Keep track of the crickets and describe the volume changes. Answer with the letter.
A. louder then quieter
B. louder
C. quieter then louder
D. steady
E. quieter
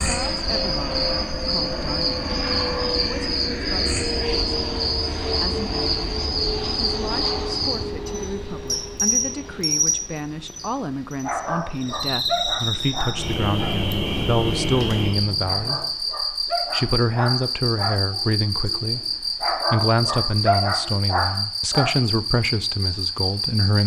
D.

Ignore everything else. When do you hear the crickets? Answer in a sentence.
The crickets can be heard from 0.0 to 23.8 s.